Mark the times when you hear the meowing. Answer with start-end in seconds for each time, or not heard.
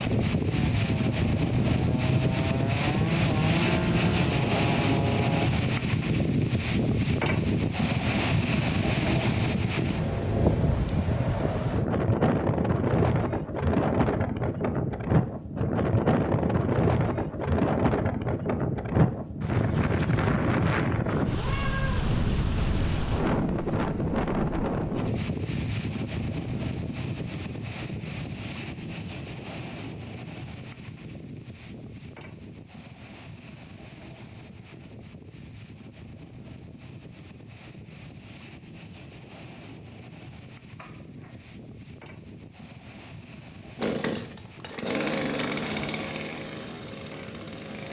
21.3-22.1, 40.8-41.2.